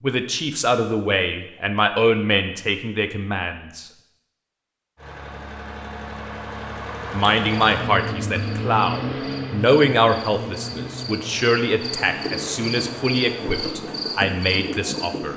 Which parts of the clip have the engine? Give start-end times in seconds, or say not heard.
5.0-13.8.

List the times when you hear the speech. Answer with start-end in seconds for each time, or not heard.
0.0-3.9, 7.1-15.3.